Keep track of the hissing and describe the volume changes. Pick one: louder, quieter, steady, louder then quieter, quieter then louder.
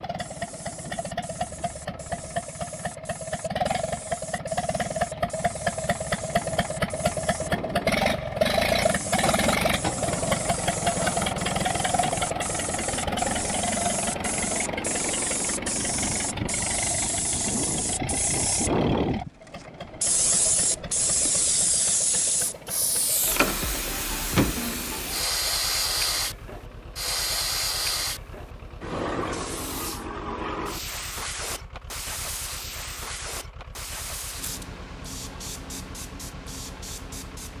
louder then quieter.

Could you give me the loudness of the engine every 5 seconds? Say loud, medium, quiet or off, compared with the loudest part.
medium, loud, loud, medium, quiet, quiet, quiet, quiet.